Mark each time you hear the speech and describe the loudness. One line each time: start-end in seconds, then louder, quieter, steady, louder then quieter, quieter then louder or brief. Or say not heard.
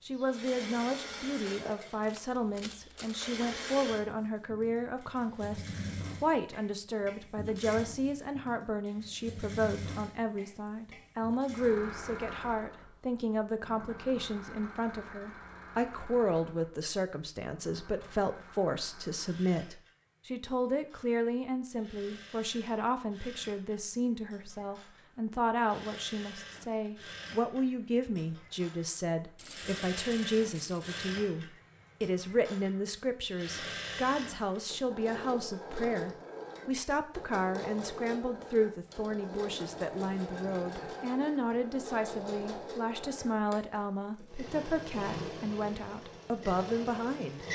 0.1-47.5 steady.